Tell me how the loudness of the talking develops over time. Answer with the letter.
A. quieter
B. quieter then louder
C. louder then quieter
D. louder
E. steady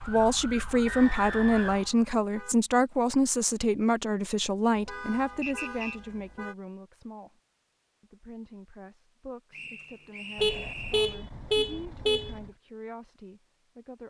A.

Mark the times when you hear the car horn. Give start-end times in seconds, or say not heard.
0.8-2.5, 4.8-6.5, 10.3-12.5.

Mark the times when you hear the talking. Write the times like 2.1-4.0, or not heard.
0.1-7.4, 8.0-14.0.